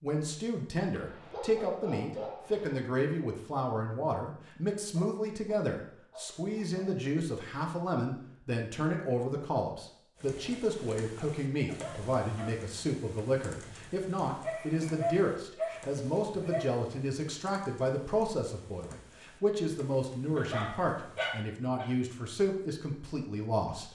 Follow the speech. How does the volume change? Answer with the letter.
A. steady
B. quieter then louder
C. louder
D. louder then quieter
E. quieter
A.